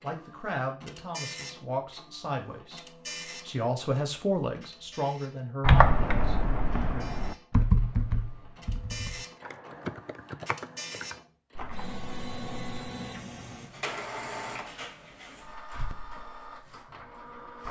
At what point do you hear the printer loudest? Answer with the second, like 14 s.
14 s.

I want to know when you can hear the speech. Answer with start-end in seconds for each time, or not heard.
0.0-7.1.